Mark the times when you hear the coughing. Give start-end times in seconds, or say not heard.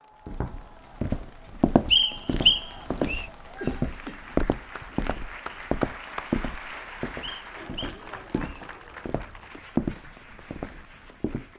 3.6-4.3.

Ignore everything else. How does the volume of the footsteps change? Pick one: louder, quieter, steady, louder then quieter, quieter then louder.
quieter then louder.